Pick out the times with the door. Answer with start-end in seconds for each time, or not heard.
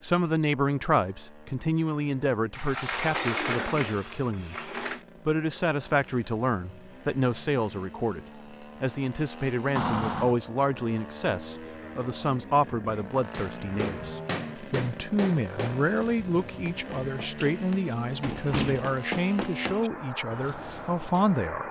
2.5-5.0, 9.8-10.3, 17.4-18.9.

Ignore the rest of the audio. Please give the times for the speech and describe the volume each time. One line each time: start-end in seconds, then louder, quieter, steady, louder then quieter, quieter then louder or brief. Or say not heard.
0.0-21.6 steady.